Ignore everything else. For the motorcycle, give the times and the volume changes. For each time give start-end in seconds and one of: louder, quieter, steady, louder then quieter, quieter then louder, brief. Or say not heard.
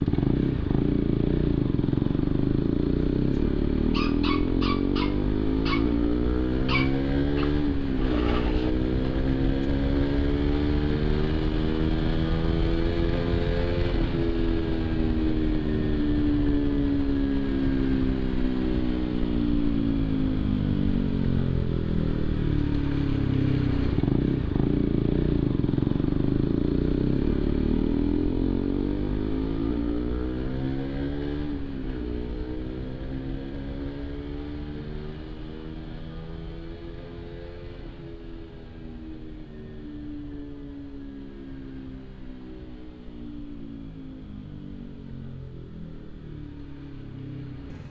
0.0-47.8 quieter.